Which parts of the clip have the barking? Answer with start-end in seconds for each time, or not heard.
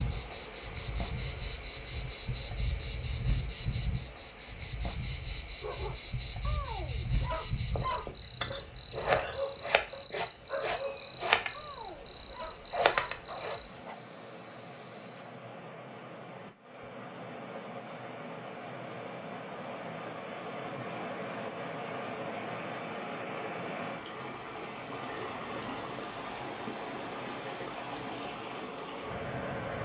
5.6-13.9.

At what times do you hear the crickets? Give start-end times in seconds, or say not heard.
0.0-15.4.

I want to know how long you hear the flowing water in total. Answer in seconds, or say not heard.
30 s.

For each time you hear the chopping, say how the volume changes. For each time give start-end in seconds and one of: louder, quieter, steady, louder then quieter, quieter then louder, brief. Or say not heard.
not heard.